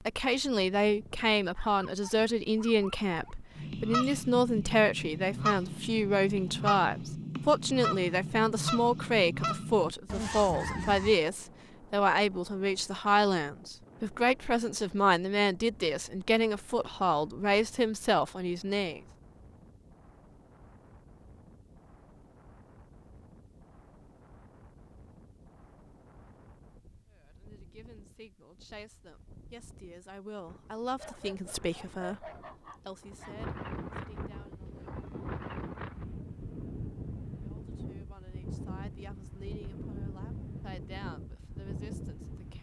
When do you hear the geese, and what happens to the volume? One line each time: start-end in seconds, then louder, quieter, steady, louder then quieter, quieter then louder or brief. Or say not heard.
3.5-11.2 steady.